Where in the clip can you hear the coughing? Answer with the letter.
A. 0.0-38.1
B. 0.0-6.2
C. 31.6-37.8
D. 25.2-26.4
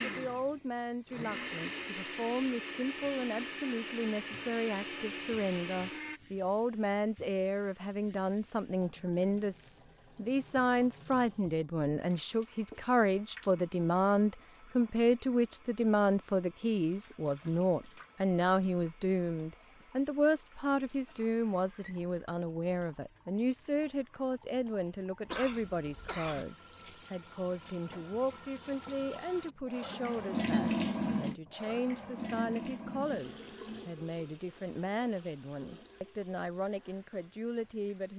D.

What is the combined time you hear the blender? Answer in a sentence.
You can hear the blender for 6 seconds altogether.